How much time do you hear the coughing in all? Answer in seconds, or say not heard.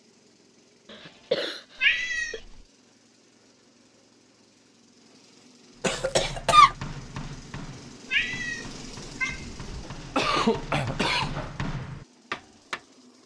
5 s.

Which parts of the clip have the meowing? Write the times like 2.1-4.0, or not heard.
1.8-2.6, 8.1-9.6.